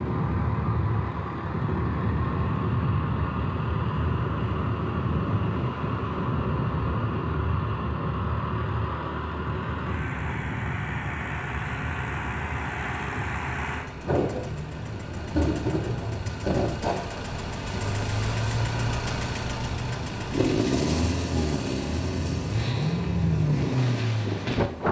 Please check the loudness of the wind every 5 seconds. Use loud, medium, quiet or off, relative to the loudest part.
loud, loud, medium, medium, loud.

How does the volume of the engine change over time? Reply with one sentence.
The volume of the engine goes up.